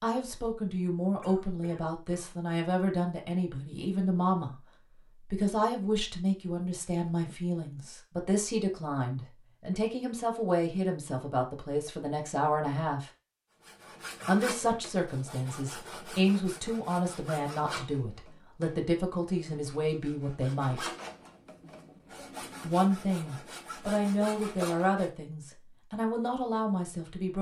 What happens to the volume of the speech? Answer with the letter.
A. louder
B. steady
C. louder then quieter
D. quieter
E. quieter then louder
B.